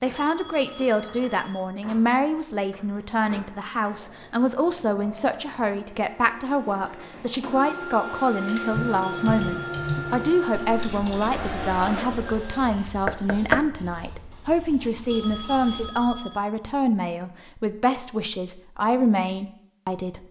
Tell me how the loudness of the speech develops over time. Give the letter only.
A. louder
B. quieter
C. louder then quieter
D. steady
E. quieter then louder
D.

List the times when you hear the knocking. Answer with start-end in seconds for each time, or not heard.
13.1-13.7.